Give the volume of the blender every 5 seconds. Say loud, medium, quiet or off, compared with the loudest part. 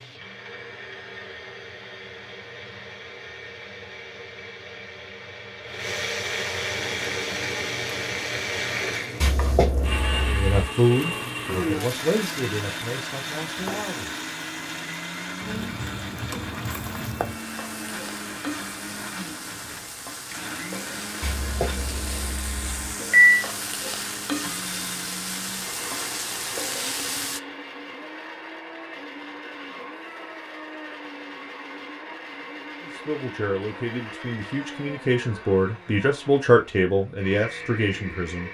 medium, loud, loud, medium, medium, medium, medium, medium.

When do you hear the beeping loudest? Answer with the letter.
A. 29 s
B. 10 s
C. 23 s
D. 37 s
C.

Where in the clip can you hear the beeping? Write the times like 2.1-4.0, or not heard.
9.2-10.5, 21.2-23.4.